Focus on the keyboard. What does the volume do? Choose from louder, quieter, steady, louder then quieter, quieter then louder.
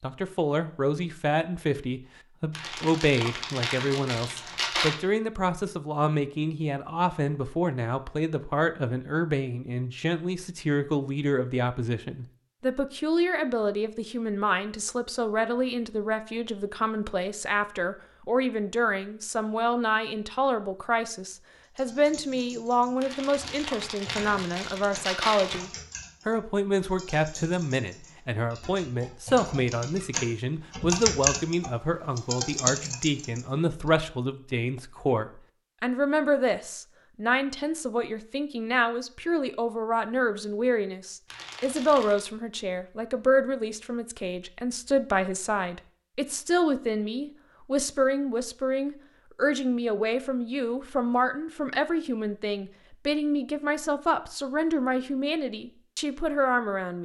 louder.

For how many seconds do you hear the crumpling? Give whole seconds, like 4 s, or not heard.
6 s.